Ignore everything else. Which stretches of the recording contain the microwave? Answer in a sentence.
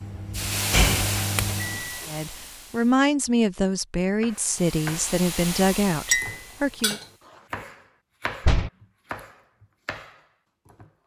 You can hear the microwave from 0.0 to 2.0 s.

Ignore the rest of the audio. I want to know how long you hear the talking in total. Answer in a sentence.
The talking can be heard for 5 seconds in total.